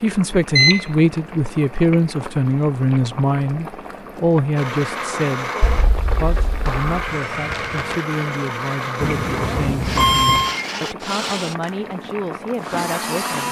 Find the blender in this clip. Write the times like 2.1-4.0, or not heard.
4.5-13.4.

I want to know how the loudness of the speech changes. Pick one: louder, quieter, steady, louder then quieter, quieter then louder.
quieter.